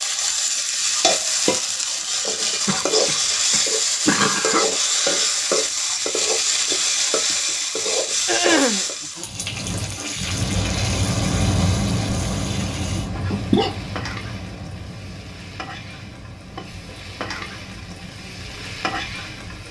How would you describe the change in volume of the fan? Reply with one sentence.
The volume of the fan goes down.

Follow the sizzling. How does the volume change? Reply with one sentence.
The volume of the sizzling goes down.